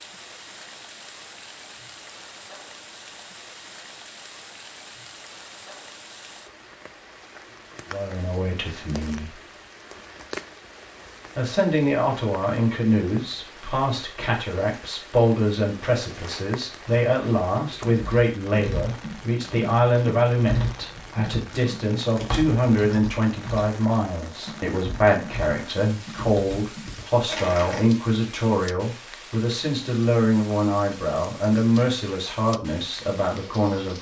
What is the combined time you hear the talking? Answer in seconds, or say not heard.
24 s.